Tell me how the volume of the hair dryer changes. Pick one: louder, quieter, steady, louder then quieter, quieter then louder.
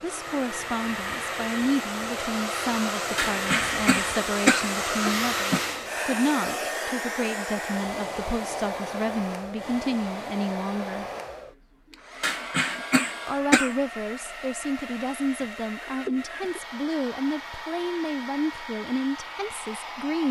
quieter.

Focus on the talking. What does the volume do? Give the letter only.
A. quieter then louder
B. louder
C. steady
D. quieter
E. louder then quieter
C.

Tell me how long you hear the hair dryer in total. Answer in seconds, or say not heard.
20 s.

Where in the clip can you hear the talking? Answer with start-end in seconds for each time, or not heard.
0.0-11.1, 13.2-20.2.